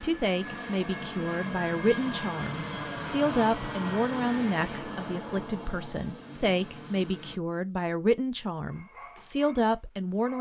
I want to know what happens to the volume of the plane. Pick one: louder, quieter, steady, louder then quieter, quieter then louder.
quieter.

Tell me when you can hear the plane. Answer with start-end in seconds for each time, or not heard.
0.0-7.4.